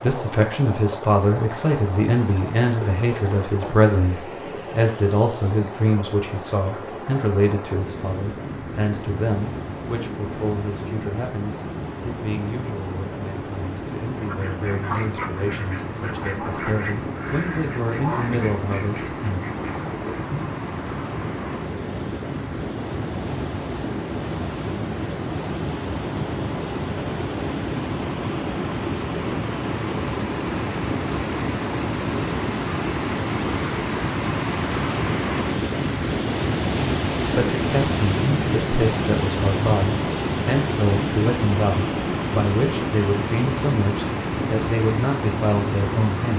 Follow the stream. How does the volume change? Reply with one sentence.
The volume of the stream goes up.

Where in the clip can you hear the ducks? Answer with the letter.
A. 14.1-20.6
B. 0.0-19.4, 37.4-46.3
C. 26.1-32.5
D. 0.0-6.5
A.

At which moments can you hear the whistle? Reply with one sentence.
You can't hear the whistle here.